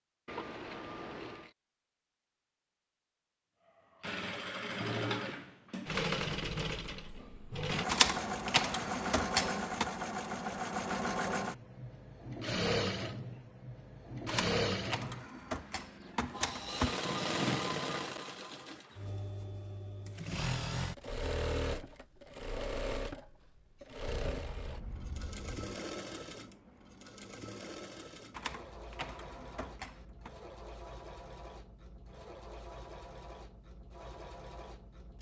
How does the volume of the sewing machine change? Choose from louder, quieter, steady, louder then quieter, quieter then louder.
quieter.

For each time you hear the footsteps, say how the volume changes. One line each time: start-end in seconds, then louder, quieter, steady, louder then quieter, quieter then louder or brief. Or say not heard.
not heard.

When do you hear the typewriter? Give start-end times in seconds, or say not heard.
7.8-9.9, 14.2-17.1, 28.3-30.3.